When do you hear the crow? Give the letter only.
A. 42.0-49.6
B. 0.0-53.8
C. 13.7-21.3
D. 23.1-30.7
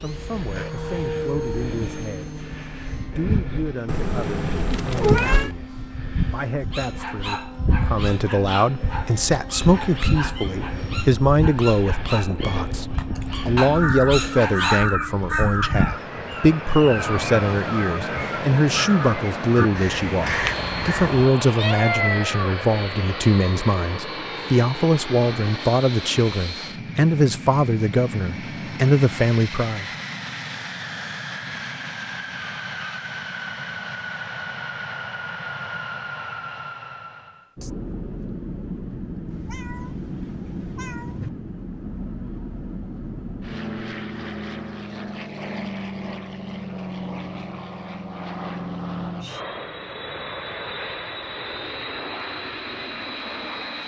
C.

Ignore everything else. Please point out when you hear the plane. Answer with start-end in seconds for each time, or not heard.
0.0-53.8.